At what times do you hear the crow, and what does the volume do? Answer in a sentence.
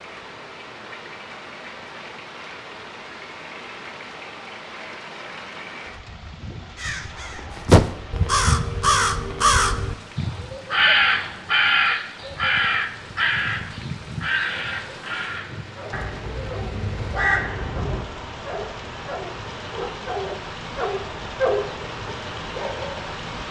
The crow can be heard from 6.8 to 18.1 s, getting quieter.